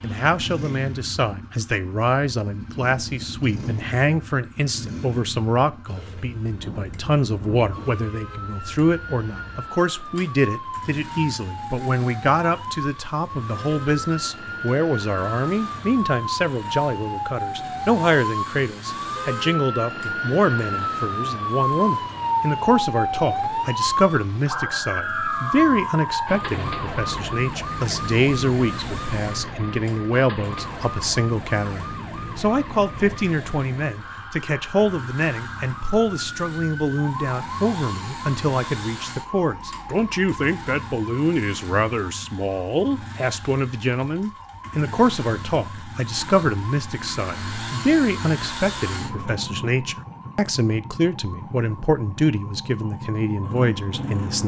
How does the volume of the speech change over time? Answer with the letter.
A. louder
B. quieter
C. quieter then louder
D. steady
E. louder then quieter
D.